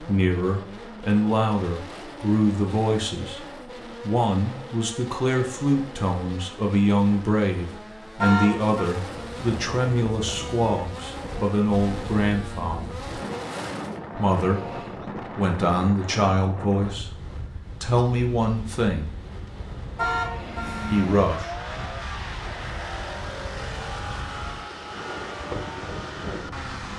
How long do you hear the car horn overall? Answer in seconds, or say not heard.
2 s.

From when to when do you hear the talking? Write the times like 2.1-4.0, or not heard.
0.0-13.0, 14.2-19.1, 20.9-21.5.